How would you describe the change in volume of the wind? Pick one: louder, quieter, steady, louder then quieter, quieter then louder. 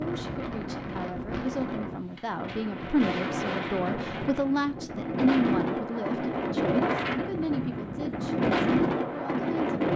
louder.